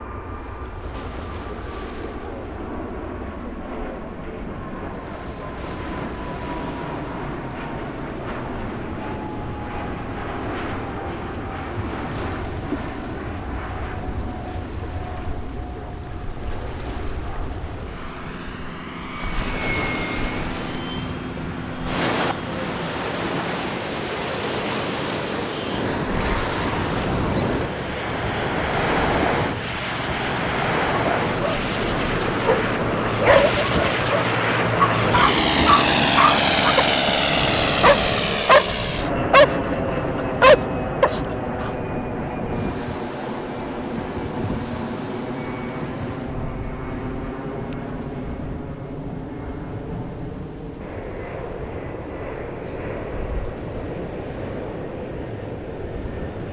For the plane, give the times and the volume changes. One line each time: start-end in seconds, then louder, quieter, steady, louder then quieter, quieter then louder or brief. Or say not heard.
0.0-56.4 louder then quieter.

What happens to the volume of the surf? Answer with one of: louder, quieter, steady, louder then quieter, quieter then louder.
louder then quieter.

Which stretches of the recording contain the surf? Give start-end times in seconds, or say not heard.
0.0-56.4.